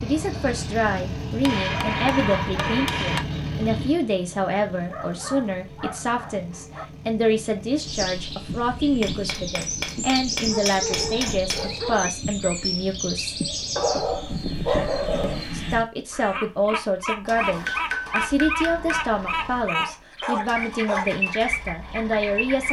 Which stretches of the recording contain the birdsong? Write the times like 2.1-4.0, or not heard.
7.8-22.6.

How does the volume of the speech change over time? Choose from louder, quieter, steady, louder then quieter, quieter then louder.
steady.